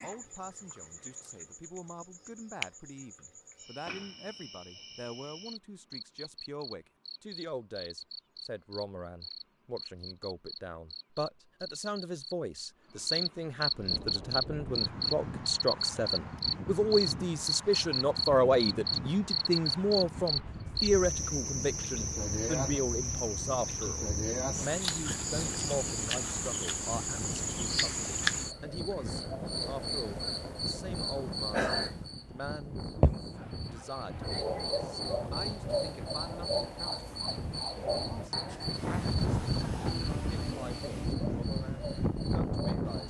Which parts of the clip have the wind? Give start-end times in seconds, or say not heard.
13.7-43.0.